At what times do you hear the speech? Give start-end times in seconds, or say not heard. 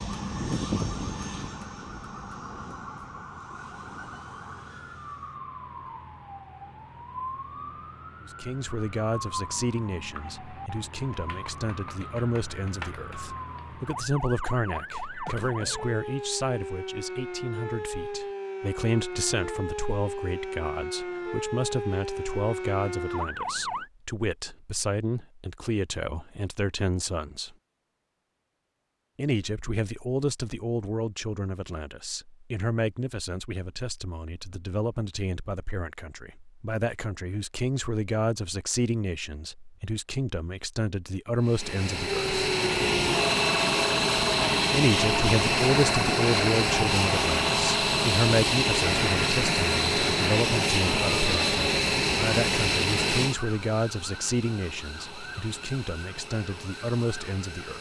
8.2-27.6, 29.1-42.3, 44.7-57.7.